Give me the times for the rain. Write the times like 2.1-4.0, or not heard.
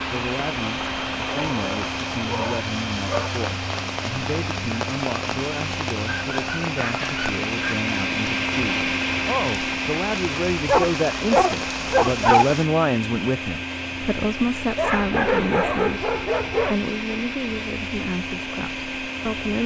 0.0-12.7.